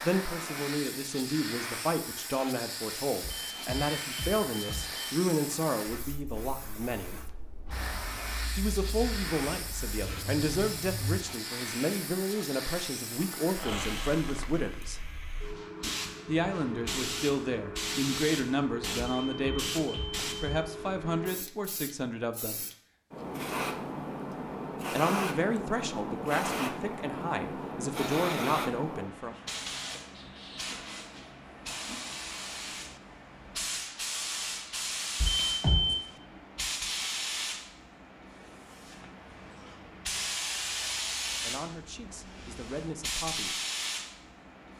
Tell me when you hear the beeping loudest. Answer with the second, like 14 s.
36 s.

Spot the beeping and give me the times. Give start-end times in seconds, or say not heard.
3.2-5.2, 19.2-20.8, 35.2-36.1.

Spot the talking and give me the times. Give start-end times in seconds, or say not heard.
0.0-7.2, 8.6-15.1, 16.2-22.6, 24.9-29.4, 41.4-43.6.